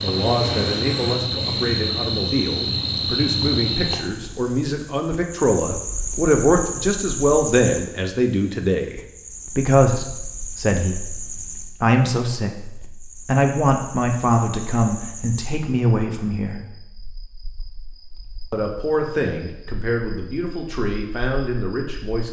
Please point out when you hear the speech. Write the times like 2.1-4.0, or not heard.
0.0-16.6, 18.5-22.2.